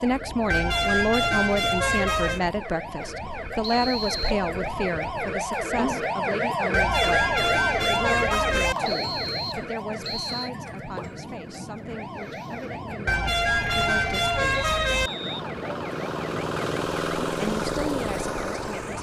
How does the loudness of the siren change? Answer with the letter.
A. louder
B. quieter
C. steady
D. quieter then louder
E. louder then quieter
E.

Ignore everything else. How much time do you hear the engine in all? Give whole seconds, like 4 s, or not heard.
5 s.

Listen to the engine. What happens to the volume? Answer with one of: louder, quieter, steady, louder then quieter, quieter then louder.
louder.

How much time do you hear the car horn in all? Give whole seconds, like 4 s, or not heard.
6 s.